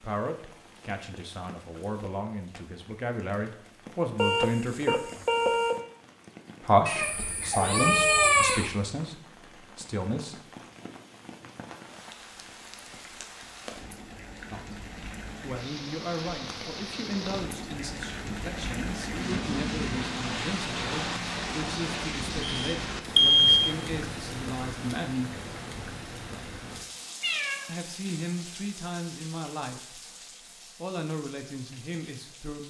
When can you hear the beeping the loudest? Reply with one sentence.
The volume of the beeping peaks at 23 seconds.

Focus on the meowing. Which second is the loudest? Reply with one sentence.
The loudest moment of the meowing is at 8 seconds.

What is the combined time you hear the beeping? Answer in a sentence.
The beeping can be heard for 3 seconds in total.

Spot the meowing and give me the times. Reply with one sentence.
You can hear the meowing from 6.8 to 8.7 s and from 27.2 to 27.7 s.